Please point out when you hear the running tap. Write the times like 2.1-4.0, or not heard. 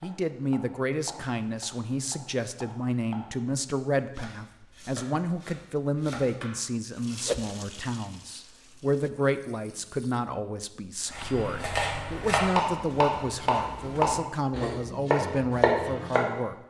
7.0-10.3.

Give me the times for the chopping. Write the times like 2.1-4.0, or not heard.
0.0-6.6, 11.1-16.3.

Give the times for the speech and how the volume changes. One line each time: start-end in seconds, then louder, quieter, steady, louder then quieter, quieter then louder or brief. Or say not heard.
0.0-16.6 steady.